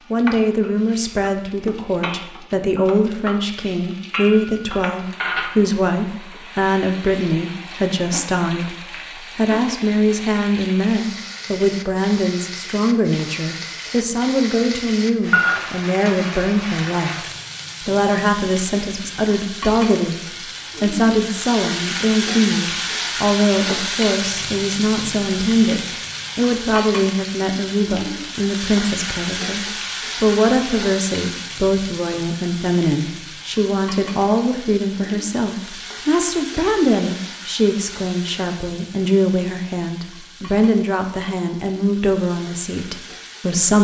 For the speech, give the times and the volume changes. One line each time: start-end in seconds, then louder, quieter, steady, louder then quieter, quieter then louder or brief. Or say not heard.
0.1-43.7 steady.